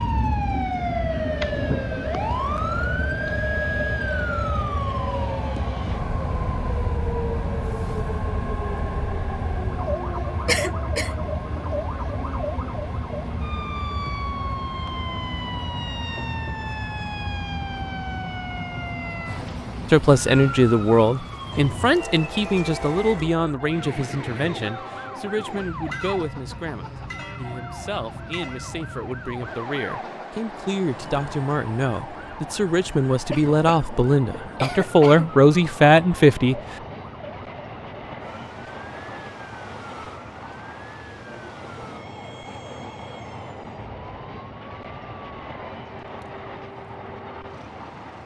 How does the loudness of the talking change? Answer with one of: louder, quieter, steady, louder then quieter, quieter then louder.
quieter then louder.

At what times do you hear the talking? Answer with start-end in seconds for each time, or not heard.
19.9-36.6.